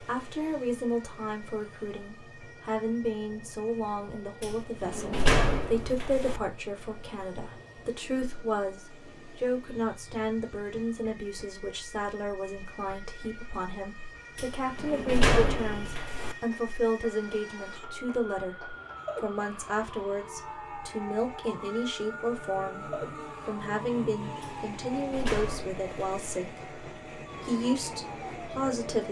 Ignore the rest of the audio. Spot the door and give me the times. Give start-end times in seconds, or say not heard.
4.4-6.4, 14.3-16.4, 24.4-26.4.